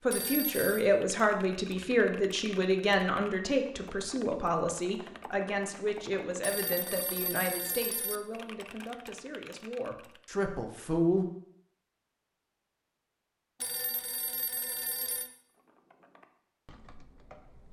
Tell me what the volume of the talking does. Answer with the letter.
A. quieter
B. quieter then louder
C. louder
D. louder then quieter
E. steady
A.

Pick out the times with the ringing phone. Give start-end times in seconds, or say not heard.
0.1-0.8, 6.4-8.2, 13.6-15.3.